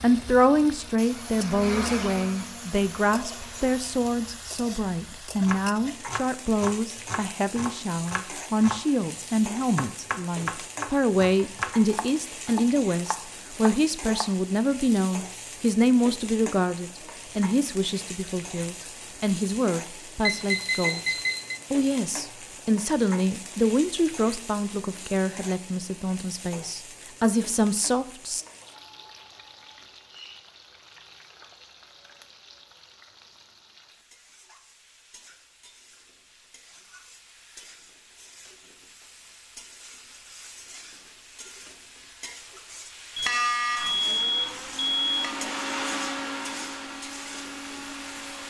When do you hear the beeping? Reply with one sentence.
The beeping can be heard from 20.2 to 21.6 s and from 43.1 to 45.4 s.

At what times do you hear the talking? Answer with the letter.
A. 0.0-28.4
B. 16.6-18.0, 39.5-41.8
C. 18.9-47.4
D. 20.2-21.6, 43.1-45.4
A.